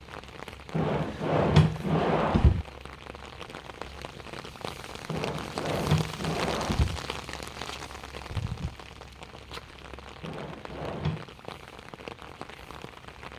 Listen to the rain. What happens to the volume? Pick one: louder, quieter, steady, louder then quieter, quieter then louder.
louder then quieter.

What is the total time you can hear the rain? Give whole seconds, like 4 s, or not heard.
13 s.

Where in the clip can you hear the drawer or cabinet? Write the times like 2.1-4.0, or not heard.
0.7-2.6, 5.0-7.0, 10.2-11.2.